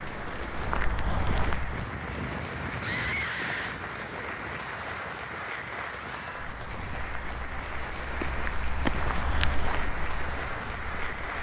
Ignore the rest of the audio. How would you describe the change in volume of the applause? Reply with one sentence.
The loudness of the applause stays about the same.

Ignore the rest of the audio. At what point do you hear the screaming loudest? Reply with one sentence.
The loudest moment of the screaming is at 3 seconds.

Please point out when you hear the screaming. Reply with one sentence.
You can hear the screaming from 2.8 to 3.8 s and from 6.1 to 6.5 s.